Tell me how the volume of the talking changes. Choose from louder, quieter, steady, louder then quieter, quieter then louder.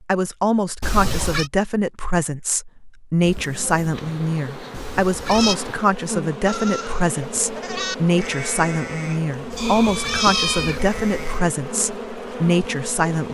steady.